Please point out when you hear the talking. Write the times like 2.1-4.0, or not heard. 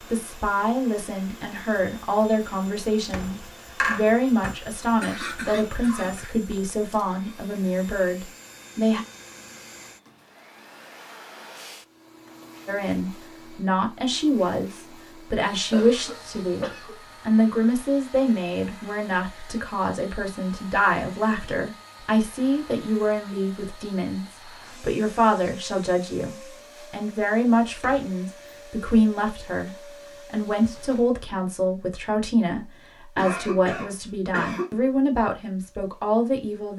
0.0-9.1, 12.7-36.7.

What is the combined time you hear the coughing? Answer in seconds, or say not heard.
5 s.